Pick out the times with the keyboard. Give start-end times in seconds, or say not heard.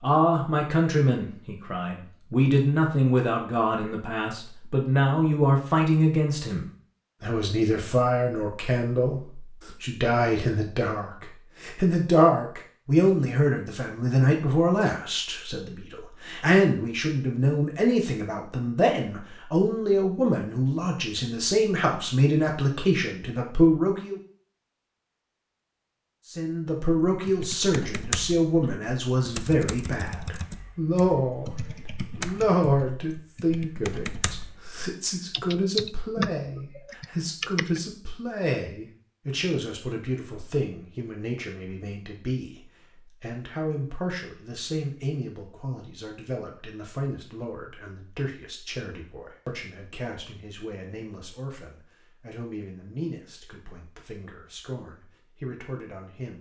27.1-37.8.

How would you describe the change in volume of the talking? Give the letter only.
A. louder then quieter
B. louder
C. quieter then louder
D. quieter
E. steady
D.